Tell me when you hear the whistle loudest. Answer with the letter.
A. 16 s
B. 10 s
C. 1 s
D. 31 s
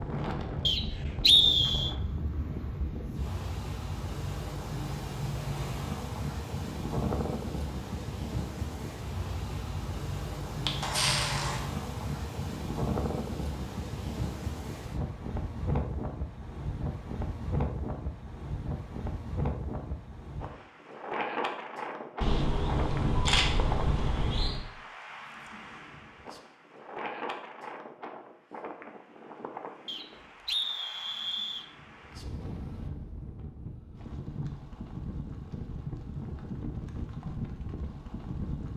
C.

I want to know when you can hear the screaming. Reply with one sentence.
You can't hear the screaming here.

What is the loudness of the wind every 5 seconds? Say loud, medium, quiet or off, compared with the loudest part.
loud, loud, loud, loud, loud, medium, medium, loud.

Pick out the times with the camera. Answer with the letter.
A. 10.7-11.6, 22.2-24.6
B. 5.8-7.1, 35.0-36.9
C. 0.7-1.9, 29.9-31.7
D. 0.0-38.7
A.